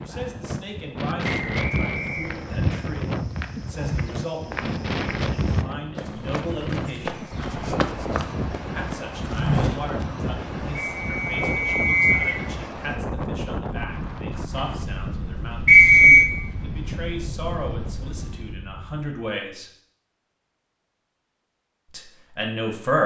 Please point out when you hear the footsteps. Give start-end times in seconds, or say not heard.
2.1-10.1.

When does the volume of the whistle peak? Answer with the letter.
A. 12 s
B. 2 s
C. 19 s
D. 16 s
D.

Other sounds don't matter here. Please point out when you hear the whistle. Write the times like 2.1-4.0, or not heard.
1.2-2.6, 11.0-12.4, 15.7-16.3.